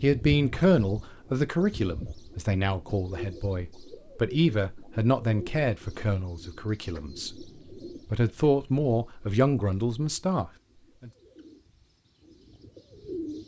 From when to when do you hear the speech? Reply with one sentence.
You can hear the speech from 0.0 to 7.3 s and from 8.1 to 11.1 s.